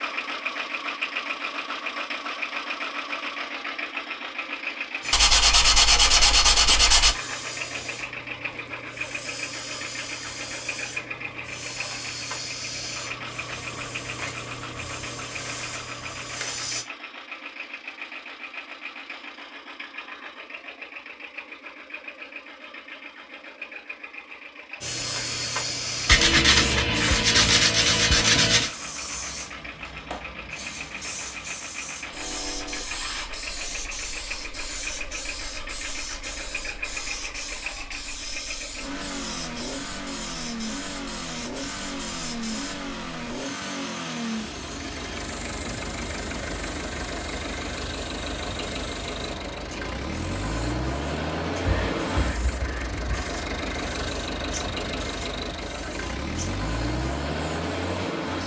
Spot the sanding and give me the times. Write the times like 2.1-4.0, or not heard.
5.1-7.2, 26.1-28.7, 51.6-53.3.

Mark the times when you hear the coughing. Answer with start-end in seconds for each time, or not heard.
not heard.